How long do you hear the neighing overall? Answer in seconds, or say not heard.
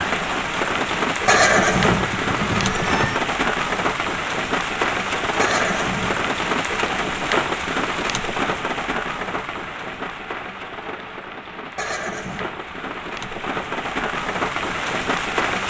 4 s.